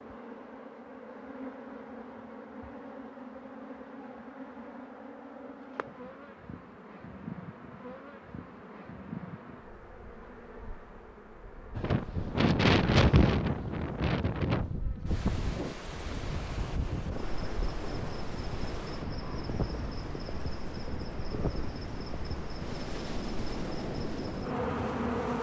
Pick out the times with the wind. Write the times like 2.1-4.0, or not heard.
11.8-25.3.